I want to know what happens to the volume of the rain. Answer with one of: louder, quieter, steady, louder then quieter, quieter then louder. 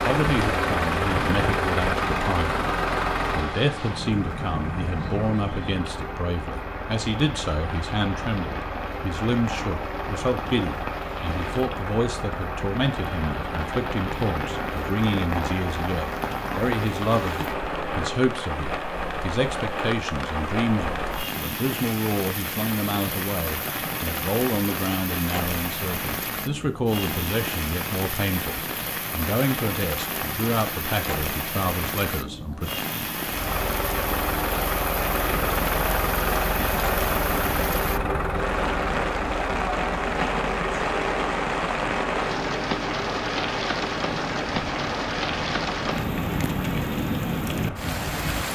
louder.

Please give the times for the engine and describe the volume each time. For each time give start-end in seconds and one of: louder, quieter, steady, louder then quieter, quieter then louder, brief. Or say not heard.
0.0-18.3 quieter
33.2-48.5 quieter.